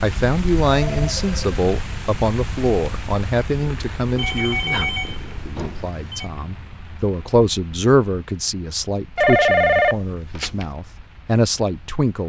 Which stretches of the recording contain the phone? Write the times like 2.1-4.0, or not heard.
0.8-1.6, 4.2-6.3, 9.2-10.7.